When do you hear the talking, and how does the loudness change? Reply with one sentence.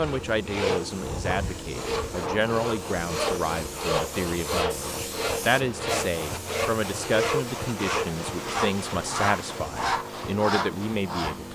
You can hear the talking from 0.0 to 11.5 s, at a steady volume.